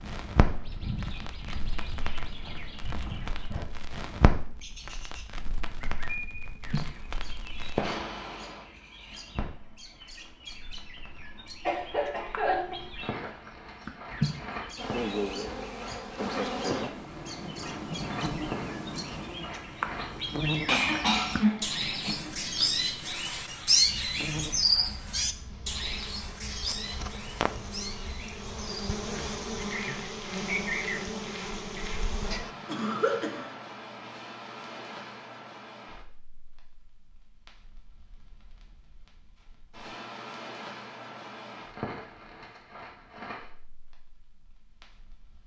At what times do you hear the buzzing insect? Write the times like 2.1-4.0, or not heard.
14.8-32.5.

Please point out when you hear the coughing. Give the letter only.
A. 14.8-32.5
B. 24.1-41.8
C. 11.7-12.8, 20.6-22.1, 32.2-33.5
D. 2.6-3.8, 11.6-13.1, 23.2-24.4
C.